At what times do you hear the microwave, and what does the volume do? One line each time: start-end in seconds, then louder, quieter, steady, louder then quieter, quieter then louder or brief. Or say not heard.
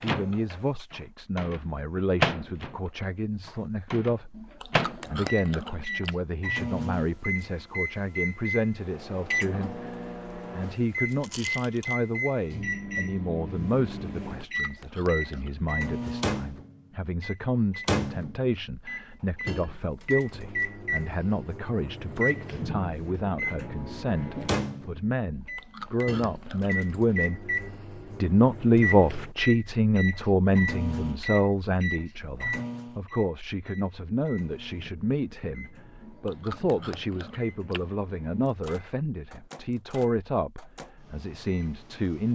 0.0-42.3 quieter.